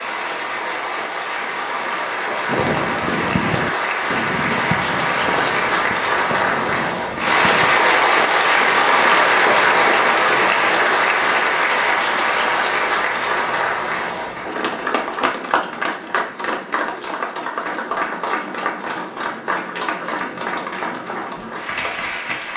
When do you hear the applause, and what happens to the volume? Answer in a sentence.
You can hear the applause from 0.0 to 22.5 s, getting louder then quieter.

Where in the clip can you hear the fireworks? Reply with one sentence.
The fireworks can be heard from 2.5 to 7.7 s.